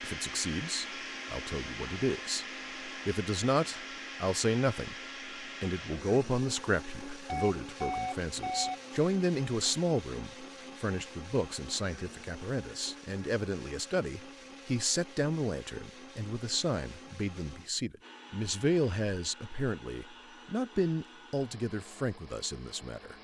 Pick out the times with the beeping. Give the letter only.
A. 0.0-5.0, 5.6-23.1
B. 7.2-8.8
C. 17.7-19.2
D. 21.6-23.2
B.